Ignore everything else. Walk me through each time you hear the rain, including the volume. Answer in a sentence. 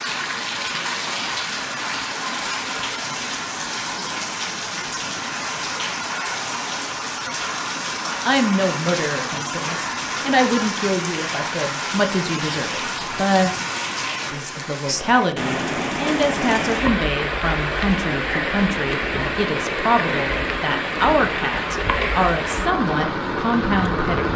You can hear the rain from 0.0 to 24.3 s, at a steady volume.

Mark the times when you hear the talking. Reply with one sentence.
You can hear the talking from 8.2 to 13.5 s and from 14.3 to 24.3 s.